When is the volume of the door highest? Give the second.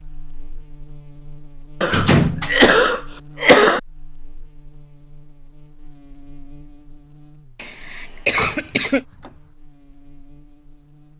2 s.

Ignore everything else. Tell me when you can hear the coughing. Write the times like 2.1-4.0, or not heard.
1.8-3.8, 7.6-9.0.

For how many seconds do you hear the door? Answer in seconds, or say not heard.
2 s.